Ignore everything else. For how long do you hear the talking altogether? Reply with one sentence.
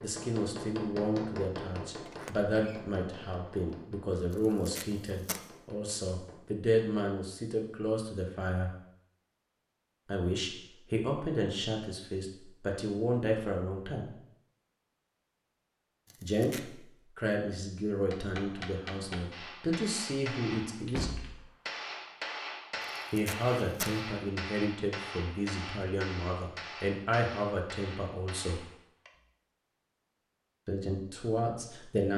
You can hear the talking for 25 seconds altogether.